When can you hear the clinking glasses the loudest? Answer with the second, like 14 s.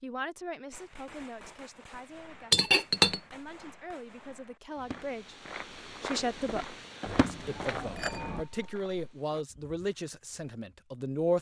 3 s.